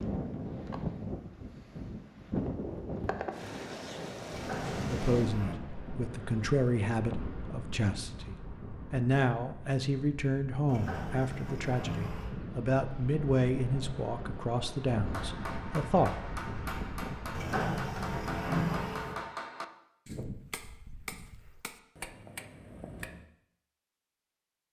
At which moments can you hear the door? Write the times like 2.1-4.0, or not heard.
4.3-5.5, 10.7-12.3, 17.3-19.1.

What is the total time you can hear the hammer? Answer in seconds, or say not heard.
8 s.